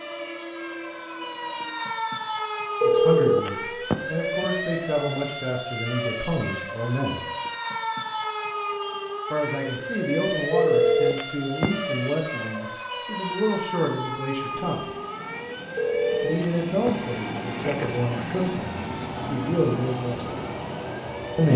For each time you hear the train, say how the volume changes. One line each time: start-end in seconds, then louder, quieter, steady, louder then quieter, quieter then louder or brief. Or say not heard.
0.0-1.8 brief
14.4-21.5 louder.